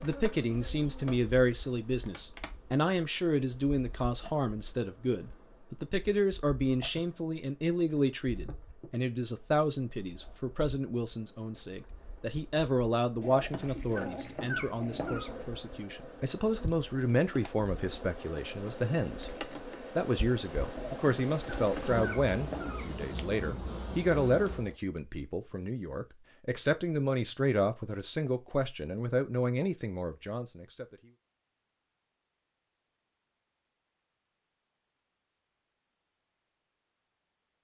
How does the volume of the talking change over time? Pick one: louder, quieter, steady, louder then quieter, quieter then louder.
steady.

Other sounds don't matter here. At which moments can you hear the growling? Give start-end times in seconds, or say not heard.
13.2-15.3, 20.7-22.9.